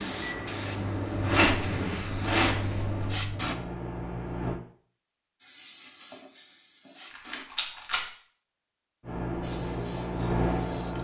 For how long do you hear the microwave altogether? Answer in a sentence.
You can hear the microwave for 6 seconds altogether.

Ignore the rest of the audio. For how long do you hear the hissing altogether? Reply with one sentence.
You can hear the hissing for 7 seconds altogether.